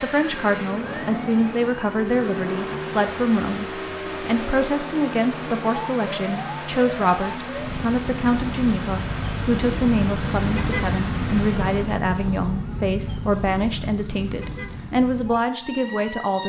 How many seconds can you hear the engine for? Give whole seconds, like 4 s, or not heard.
12 s.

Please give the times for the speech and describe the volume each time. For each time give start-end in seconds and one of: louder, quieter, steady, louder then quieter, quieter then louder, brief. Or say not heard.
0.0-16.4 steady.